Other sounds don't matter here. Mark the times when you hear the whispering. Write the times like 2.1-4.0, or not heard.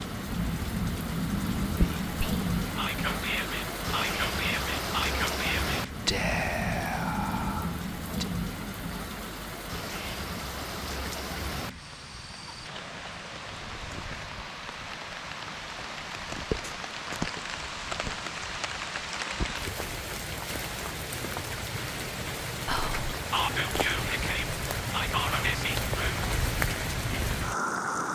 1.6-8.3, 22.6-26.2.